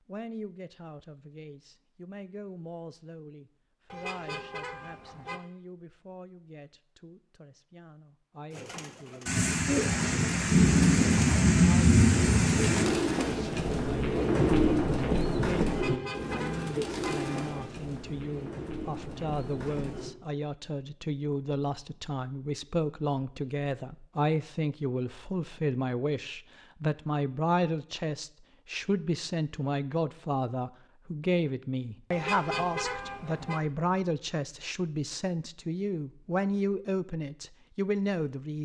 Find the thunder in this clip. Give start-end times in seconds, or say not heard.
9.2-12.8.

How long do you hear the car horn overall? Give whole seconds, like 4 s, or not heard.
5 s.